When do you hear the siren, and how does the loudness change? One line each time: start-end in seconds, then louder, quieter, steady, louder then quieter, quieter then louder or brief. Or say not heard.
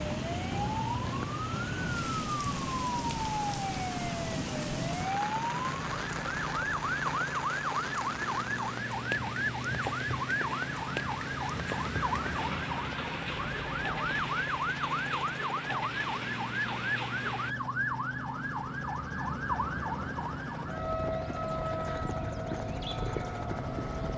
0.0-24.1 steady.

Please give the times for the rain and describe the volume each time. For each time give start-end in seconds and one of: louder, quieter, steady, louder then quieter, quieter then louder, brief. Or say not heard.
0.0-17.6 steady.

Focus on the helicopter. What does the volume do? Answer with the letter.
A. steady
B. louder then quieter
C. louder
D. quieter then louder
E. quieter
A.